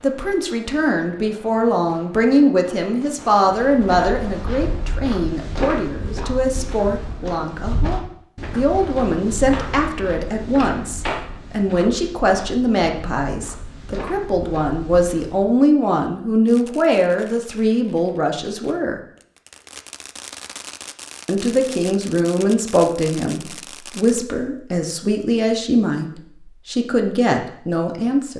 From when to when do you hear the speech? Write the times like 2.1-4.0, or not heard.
0.0-19.0, 21.2-28.3.